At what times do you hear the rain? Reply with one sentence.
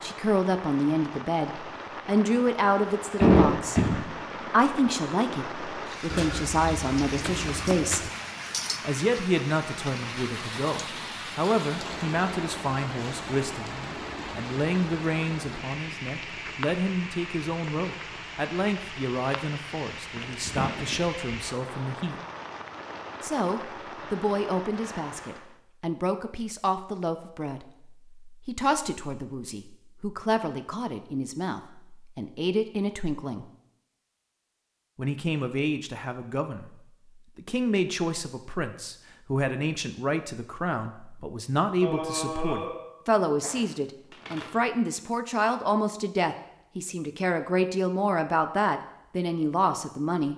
You can hear the rain from 0.0 to 25.6 s.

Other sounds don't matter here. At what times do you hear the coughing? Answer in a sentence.
You can hear the coughing from 3.2 to 4.0 s, from 20.1 to 21.1 s and from 41.8 to 43.7 s.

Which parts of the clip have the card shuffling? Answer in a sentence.
The card shuffling can be heard from 6.1 to 8.1 s and from 43.5 to 44.8 s.